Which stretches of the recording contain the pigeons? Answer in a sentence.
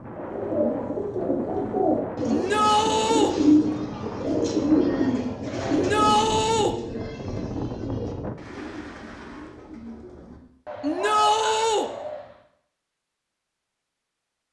The pigeons can be heard from 0.1 to 12.2 s.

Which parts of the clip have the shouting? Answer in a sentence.
The shouting can be heard from 2.3 to 3.4 s, from 5.7 to 6.8 s and from 10.8 to 11.9 s.